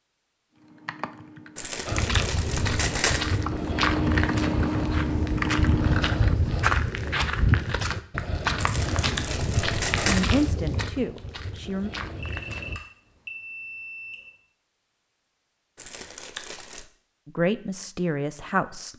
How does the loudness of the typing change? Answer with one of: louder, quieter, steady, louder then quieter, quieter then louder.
louder.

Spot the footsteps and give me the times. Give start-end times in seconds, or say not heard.
1.9-12.8.